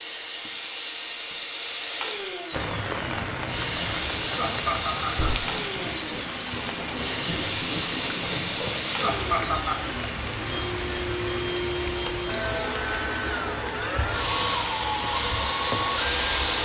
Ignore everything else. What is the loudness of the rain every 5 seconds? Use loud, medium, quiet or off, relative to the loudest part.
loud, loud, loud, medium.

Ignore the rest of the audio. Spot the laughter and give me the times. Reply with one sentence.
The laughter can be heard from 4.3 to 5.4 s and from 8.9 to 9.8 s.